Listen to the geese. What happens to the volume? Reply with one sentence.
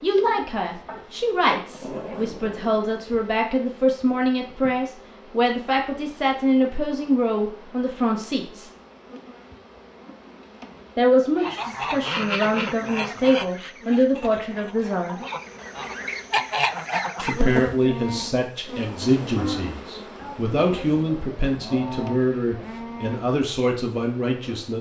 The volume of the geese goes down, then up.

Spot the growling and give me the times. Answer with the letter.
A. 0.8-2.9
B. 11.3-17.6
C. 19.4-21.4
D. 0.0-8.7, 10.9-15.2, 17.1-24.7
A.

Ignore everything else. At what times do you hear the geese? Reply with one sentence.
You can hear the geese from 11.3 to 17.6 s.